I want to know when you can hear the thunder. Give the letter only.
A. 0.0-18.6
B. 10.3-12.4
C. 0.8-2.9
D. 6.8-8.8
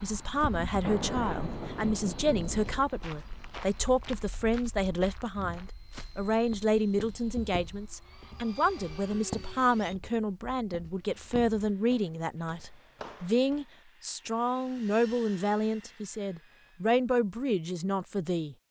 C.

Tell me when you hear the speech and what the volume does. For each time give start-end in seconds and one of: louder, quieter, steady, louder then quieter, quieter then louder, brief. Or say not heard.
0.0-18.6 steady.